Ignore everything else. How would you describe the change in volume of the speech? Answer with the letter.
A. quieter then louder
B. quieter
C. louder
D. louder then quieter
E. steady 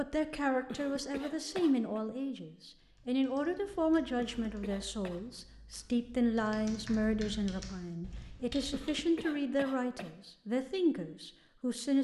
E.